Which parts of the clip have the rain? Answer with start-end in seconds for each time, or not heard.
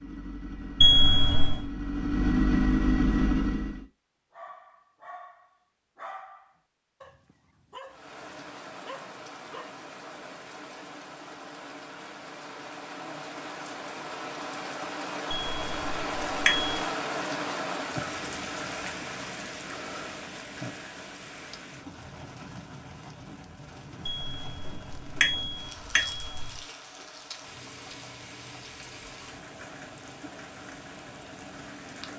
7.8-32.1.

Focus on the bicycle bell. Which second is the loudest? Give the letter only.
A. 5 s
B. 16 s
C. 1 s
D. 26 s
C.